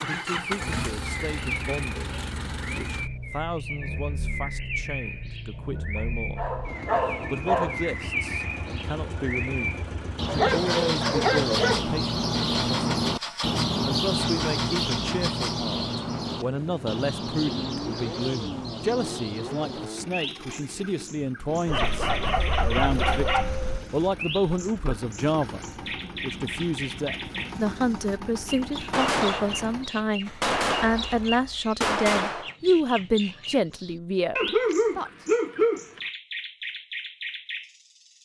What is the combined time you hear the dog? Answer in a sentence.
You can hear the dog for 7 seconds altogether.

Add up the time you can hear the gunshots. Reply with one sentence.
You can hear the gunshots for 4 seconds altogether.